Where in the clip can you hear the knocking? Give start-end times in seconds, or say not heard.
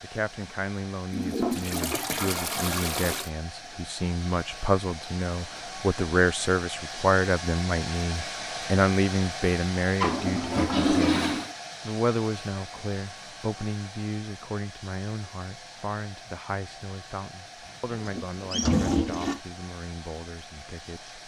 not heard.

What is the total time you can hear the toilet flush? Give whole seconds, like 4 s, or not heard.
5 s.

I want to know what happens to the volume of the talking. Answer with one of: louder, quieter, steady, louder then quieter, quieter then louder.
louder then quieter.